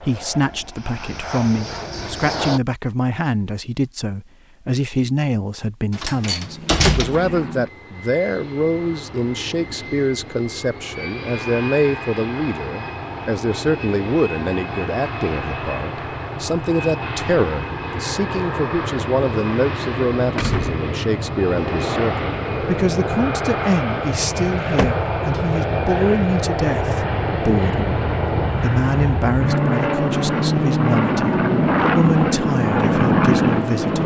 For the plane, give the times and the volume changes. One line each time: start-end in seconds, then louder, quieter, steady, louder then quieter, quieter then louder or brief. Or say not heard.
0.0-2.6 brief
6.4-34.0 louder.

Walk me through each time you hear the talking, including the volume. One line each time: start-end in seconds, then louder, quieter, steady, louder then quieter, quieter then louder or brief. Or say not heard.
0.0-34.0 steady.